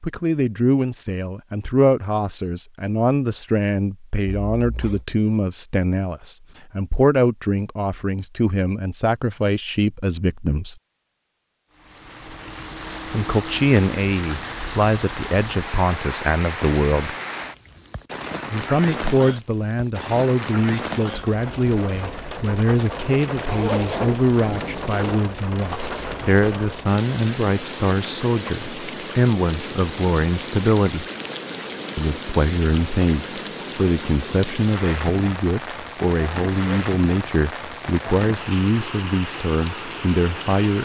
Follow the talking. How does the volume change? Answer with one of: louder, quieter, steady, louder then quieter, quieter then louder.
steady.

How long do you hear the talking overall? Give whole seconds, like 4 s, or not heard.
36 s.